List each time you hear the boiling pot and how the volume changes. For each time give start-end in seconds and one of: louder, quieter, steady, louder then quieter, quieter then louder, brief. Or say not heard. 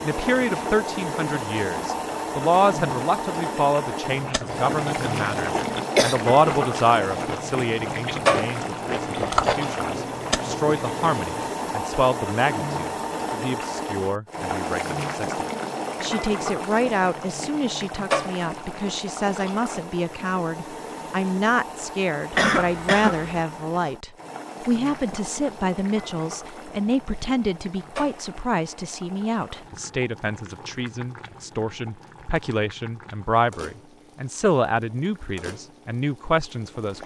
0.0-37.0 quieter.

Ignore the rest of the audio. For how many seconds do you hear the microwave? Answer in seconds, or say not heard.
not heard.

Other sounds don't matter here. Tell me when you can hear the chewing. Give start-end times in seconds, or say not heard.
4.0-11.6.